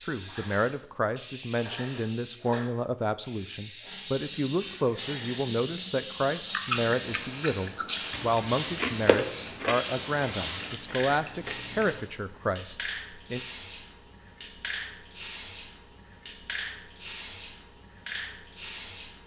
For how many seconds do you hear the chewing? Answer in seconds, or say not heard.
6 s.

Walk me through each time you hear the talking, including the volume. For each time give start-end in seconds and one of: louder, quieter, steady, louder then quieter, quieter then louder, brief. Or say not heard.
0.1-13.4 steady.